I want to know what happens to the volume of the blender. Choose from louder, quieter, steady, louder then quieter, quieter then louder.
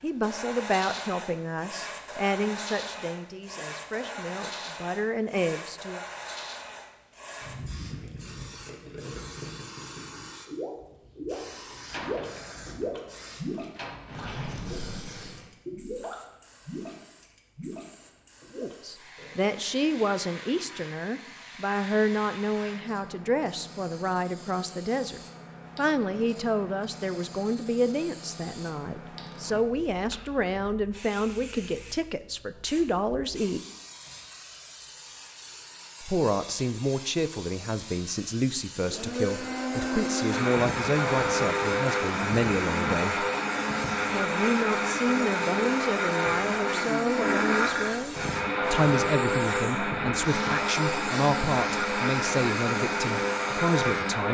steady.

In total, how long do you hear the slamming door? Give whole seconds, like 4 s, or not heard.
2 s.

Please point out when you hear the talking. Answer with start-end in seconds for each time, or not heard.
0.0-6.0, 18.6-33.6, 36.0-43.2, 44.1-54.2.